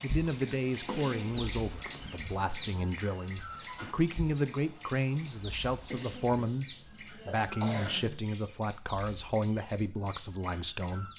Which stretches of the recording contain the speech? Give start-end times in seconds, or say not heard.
0.0-11.1.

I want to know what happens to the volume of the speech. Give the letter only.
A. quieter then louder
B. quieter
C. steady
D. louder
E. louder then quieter
C.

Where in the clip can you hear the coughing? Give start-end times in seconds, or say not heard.
0.8-1.4, 5.8-8.2.